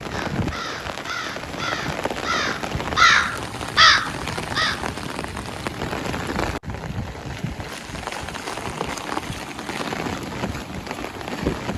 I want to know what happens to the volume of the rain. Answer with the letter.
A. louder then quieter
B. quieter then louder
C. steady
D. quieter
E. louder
C.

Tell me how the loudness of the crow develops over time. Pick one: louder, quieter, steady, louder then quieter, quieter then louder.
louder.